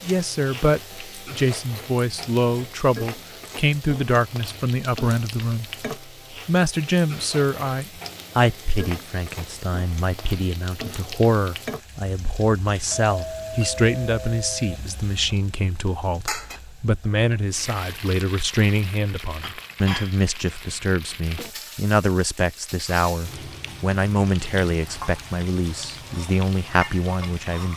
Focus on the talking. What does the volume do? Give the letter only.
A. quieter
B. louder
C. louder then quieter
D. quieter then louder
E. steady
E.